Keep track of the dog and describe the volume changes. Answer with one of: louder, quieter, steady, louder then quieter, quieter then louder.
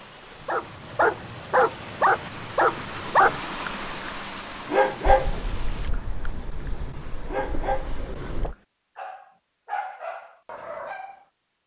quieter.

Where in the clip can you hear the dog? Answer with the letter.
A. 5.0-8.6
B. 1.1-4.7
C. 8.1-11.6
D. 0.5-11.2
D.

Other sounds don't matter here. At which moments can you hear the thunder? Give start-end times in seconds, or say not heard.
5.0-8.6.